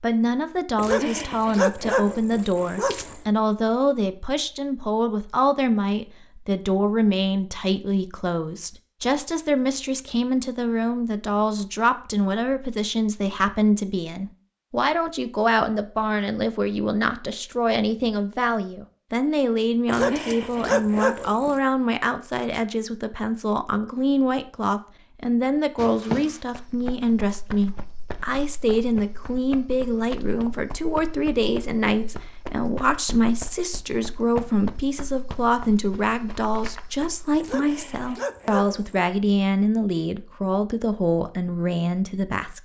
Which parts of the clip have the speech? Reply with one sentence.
The speech can be heard from 0.0 to 42.5 s.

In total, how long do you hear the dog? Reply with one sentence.
You can hear the dog for 6 seconds altogether.